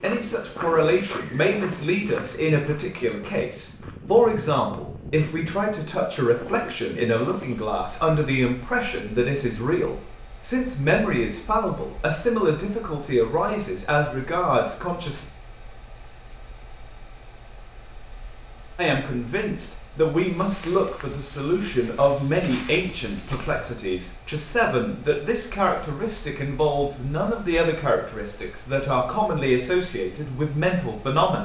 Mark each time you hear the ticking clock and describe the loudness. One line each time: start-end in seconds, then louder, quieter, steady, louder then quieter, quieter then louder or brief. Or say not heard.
not heard.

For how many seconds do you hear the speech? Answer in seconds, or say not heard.
28 s.